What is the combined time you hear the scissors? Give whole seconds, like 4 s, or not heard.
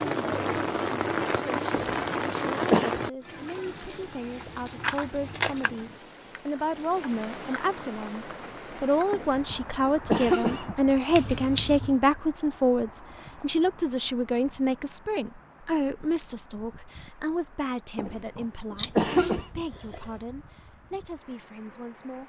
3 s.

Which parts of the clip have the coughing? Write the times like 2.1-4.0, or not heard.
1.7-3.0, 9.1-10.8, 17.9-19.4.